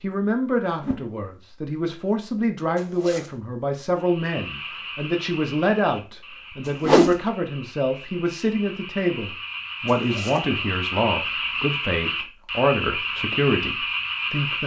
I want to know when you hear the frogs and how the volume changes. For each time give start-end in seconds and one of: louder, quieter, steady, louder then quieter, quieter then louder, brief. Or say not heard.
4.0-14.6 quieter then louder.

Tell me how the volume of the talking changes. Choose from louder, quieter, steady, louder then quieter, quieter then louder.
steady.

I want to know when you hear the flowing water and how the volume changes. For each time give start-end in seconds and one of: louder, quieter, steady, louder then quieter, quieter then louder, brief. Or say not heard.
not heard.